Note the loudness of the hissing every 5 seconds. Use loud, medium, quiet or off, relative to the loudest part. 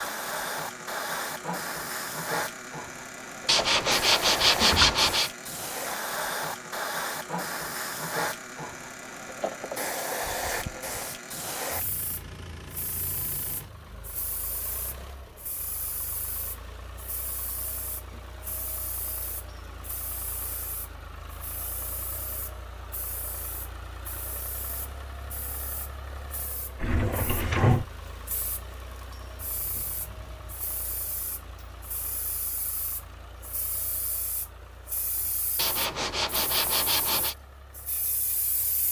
loud, loud, loud, quiet, quiet, quiet, quiet, medium.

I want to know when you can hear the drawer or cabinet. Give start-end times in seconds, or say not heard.
4.6-5.1, 26.8-27.9.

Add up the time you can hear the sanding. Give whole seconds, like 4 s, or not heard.
4 s.